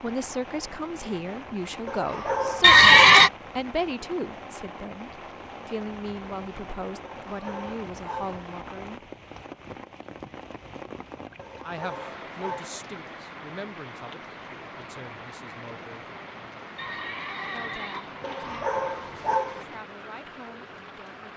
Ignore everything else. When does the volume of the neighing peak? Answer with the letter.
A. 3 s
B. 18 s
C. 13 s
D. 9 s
A.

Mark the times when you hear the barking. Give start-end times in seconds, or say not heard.
1.9-3.1, 7.0-8.4, 11.3-12.8, 18.2-19.6.